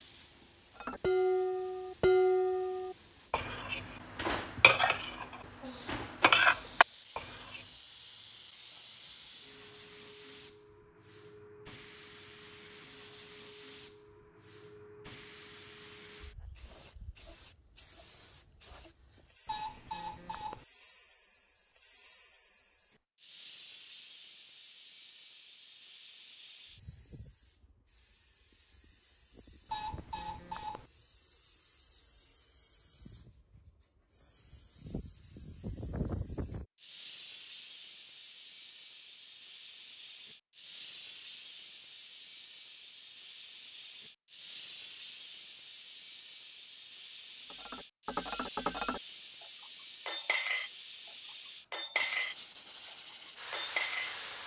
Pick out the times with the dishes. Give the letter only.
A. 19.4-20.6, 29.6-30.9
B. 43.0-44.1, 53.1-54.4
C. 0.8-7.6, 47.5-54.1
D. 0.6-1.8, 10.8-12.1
C.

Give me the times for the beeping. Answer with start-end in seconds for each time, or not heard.
19.4-20.6, 29.6-30.9.